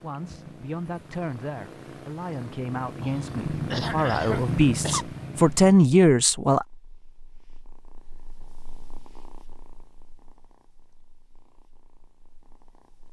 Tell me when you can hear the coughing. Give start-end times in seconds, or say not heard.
3.0-5.0.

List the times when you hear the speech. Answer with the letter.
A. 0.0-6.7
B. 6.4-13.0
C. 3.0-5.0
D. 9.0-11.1
A.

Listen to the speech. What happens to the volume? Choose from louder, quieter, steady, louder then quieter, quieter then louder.
louder.